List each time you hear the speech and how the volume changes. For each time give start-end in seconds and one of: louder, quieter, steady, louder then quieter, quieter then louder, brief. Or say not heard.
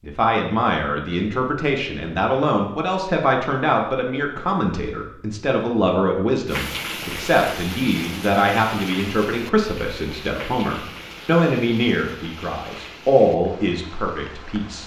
0.0-14.8 steady.